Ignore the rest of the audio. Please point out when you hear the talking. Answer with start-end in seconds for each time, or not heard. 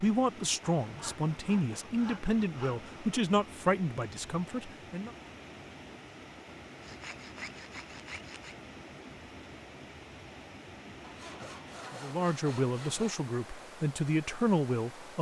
0.0-5.1, 11.9-15.1.